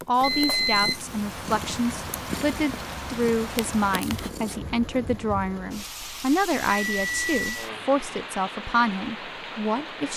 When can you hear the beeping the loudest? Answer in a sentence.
The loudest moment of the beeping is at 1 second.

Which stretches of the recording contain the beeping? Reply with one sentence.
The beeping can be heard from 0.2 to 1.0 s and from 6.7 to 7.7 s.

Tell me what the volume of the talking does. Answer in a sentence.
The volume of the talking stays about the same.